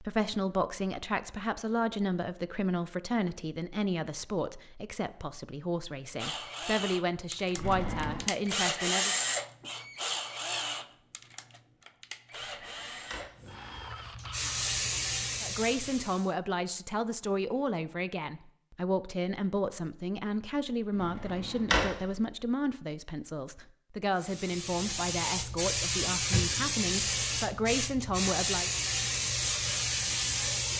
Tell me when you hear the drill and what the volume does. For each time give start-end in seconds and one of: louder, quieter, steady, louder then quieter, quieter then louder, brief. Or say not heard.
6.2-14.8 louder then quieter.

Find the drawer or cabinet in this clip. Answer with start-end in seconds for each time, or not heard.
7.5-8.2, 12.4-13.2, 20.9-21.9.